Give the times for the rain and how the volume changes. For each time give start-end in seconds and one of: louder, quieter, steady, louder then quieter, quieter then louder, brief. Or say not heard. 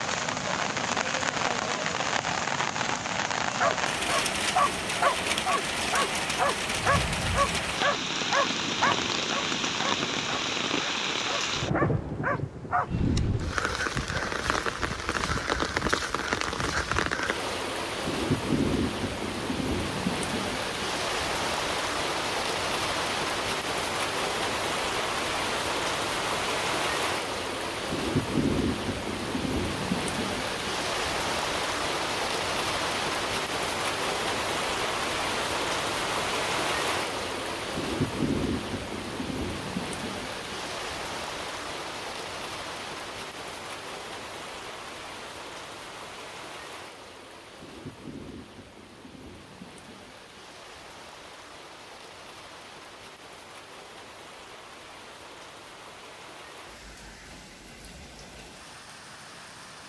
0.0-59.8 quieter.